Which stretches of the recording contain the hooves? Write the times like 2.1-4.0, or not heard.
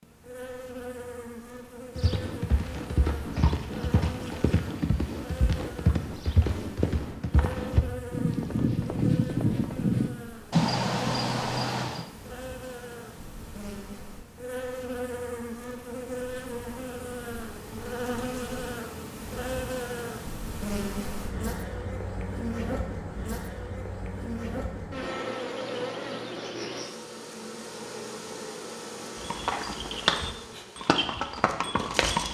1.9-12.1, 29.1-32.2.